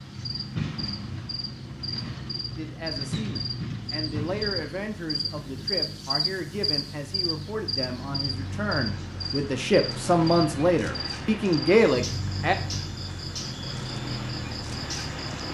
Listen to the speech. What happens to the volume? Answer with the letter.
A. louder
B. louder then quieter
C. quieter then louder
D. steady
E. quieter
A.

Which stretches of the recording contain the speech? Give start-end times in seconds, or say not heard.
2.5-12.6.